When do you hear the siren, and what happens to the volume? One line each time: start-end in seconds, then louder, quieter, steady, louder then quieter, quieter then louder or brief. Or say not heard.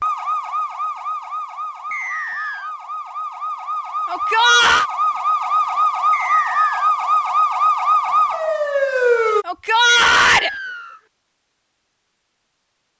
0.0-9.4 louder.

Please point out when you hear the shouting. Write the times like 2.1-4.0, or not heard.
4.0-4.8, 9.4-10.5.